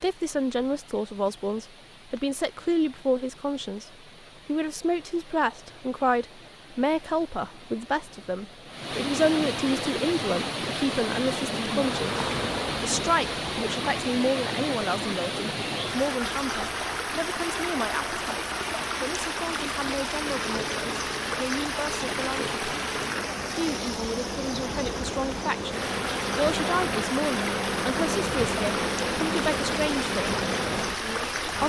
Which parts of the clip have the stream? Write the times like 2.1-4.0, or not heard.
0.0-31.6.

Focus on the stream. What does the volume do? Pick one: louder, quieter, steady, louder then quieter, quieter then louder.
louder.